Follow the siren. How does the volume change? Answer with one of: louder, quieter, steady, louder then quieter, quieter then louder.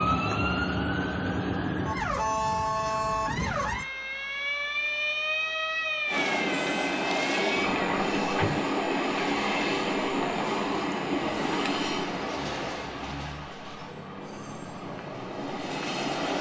quieter.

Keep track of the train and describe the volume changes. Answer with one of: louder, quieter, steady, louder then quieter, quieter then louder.
quieter.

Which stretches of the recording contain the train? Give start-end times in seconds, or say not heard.
6.0-16.3.